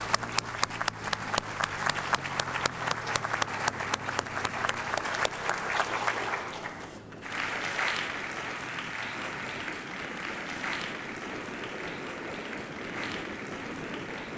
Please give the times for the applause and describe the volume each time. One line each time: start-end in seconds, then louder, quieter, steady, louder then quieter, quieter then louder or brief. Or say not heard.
0.0-14.3 quieter.